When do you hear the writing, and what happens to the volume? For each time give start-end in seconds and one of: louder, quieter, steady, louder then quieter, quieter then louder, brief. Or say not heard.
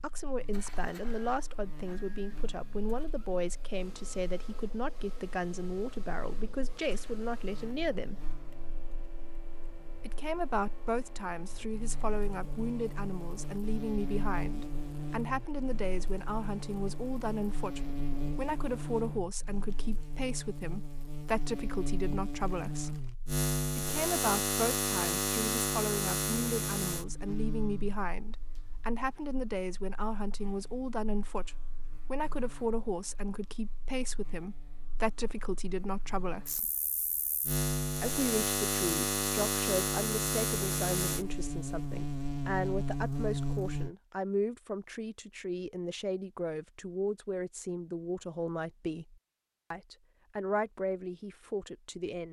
not heard.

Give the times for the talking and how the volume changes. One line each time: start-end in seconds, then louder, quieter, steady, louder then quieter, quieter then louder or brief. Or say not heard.
0.0-8.2 steady
10.0-23.0 steady
23.8-36.7 steady
38.0-52.2 steady.